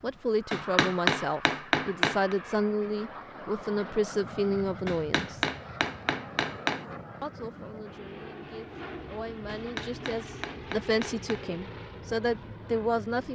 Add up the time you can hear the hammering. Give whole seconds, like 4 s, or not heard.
6 s.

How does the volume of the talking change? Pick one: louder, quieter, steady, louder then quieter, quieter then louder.
quieter then louder.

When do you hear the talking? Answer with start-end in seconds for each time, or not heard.
0.0-5.5, 7.2-13.2.